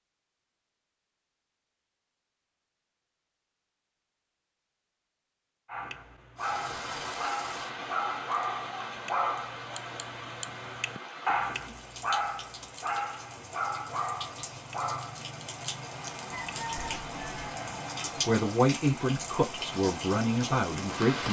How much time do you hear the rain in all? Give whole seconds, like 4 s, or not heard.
15 s.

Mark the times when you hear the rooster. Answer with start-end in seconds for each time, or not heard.
16.3-17.9.